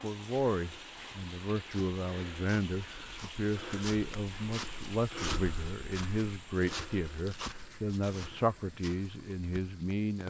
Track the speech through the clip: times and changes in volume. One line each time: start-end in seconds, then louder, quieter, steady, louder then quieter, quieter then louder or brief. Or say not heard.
0.0-10.2 steady.